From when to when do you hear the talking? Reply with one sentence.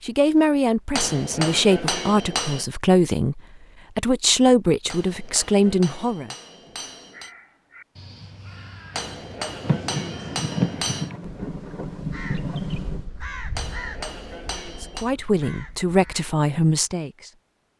The talking can be heard from 0.0 to 6.3 s and from 14.8 to 17.4 s.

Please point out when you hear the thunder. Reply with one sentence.
The thunder can be heard from 9.6 to 13.1 s.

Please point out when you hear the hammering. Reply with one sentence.
The hammering can be heard from 0.9 to 2.6 s, from 4.8 to 7.3 s, from 8.9 to 11.1 s and from 13.6 to 15.1 s.